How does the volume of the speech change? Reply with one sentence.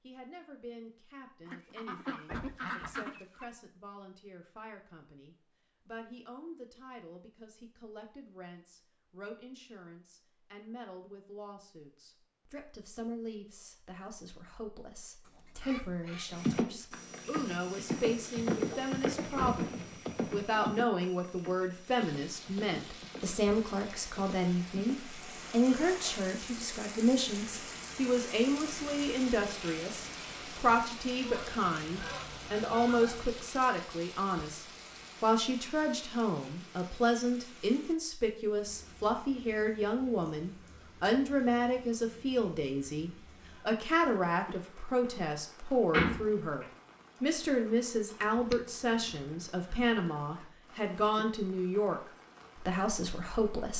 The loudness of the speech goes up.